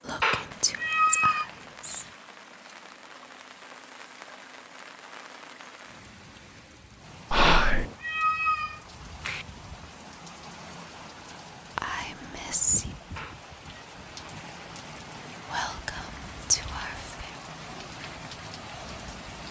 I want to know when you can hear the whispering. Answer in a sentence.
You can hear the whispering from 0.1 to 2.0 s, from 7.3 to 7.8 s, from 11.8 to 12.8 s and from 15.5 to 17.3 s.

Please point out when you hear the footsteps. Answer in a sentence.
The footsteps can't be heard in this clip.